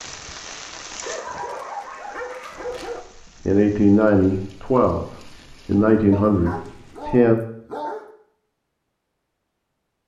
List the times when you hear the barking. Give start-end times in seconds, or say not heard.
1.0-3.0, 6.1-8.2.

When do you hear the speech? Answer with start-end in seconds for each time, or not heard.
3.5-7.4.